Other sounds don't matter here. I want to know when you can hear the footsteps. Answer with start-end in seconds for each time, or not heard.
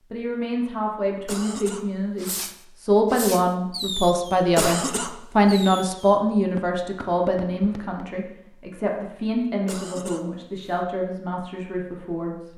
not heard.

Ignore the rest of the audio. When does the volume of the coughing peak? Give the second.
5 s.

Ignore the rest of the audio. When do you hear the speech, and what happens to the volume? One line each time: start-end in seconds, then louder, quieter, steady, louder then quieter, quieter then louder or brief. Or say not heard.
0.1-12.5 louder then quieter.